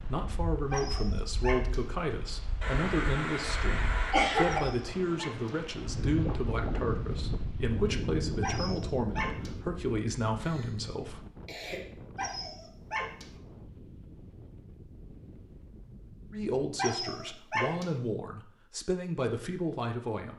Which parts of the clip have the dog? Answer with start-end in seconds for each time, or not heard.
0.7-1.9, 4.5-5.6, 8.4-9.6, 12.2-13.3, 16.8-17.9.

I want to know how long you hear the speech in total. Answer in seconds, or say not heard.
15 s.